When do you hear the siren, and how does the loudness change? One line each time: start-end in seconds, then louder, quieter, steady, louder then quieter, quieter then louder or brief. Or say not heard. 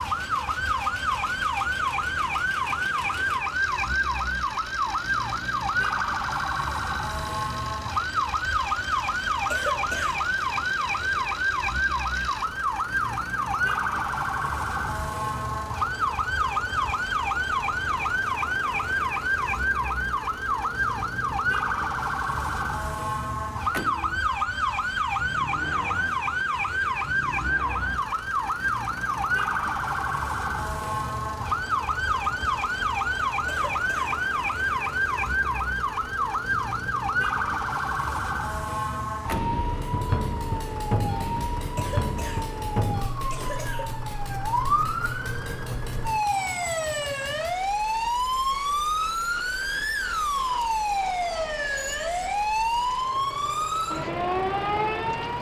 0.0-55.3 steady.